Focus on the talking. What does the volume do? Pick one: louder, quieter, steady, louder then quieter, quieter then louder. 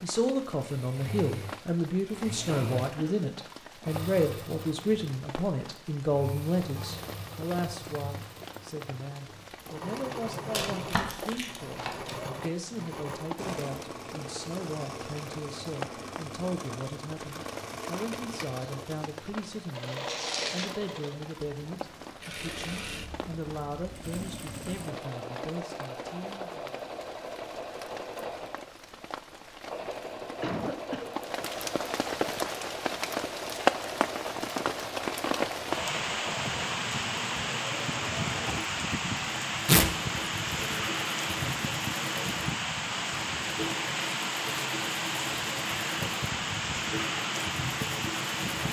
quieter.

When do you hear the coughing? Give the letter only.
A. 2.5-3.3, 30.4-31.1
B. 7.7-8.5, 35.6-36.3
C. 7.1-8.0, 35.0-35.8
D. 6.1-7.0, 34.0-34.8
A.